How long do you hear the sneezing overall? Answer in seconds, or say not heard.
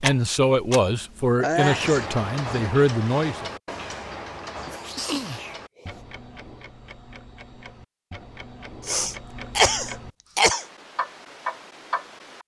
4 s.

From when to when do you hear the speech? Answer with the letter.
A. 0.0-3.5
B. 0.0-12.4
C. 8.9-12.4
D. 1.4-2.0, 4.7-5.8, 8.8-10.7
A.